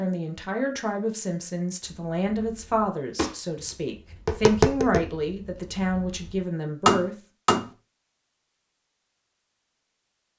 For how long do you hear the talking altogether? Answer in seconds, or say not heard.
7 s.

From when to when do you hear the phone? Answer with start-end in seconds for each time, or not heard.
not heard.